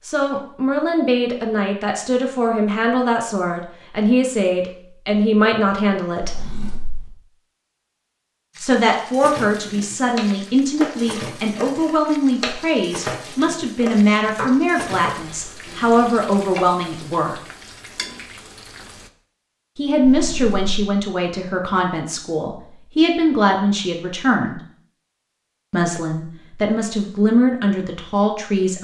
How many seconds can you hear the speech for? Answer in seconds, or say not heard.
23 s.